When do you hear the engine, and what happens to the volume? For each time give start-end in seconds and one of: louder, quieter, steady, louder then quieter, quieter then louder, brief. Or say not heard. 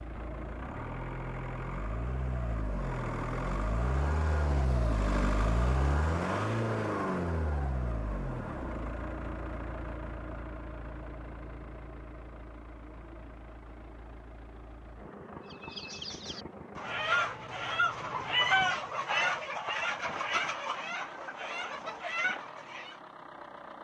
0.0-23.7 quieter.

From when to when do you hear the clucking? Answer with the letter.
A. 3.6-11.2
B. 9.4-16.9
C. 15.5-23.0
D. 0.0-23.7
C.